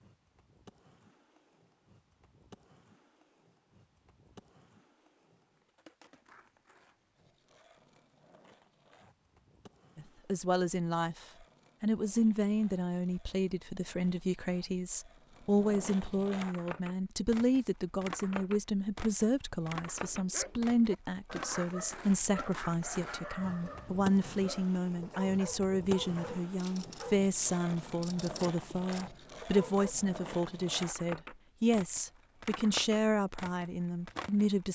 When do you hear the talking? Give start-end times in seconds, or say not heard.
9.9-34.6.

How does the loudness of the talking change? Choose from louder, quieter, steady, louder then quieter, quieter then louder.
steady.